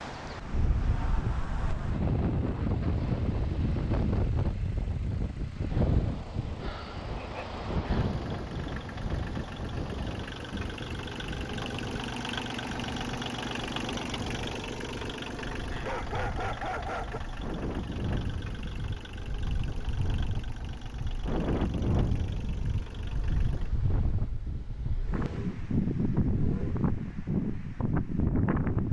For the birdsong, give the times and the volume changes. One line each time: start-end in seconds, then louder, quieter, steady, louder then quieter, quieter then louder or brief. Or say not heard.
not heard.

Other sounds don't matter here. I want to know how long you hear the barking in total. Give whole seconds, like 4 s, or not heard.
2 s.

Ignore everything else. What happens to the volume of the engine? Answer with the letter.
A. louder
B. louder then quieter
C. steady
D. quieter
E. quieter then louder
B.